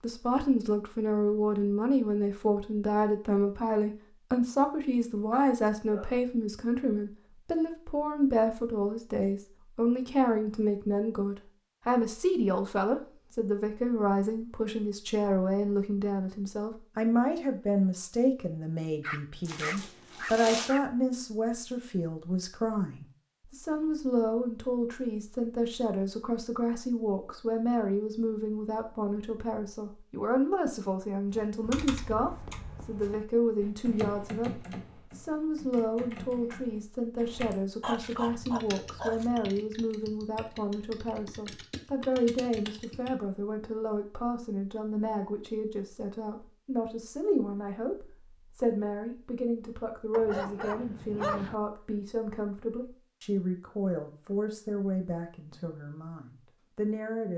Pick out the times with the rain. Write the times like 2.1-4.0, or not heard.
not heard.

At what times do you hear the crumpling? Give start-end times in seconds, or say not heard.
19.4-20.7.